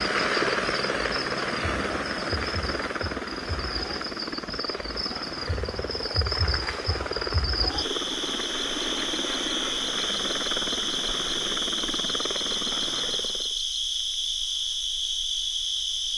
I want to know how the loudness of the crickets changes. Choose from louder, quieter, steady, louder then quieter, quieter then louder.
louder.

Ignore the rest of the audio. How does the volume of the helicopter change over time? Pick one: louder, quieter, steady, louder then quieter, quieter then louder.
quieter.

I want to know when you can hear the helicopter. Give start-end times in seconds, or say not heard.
0.0-13.6.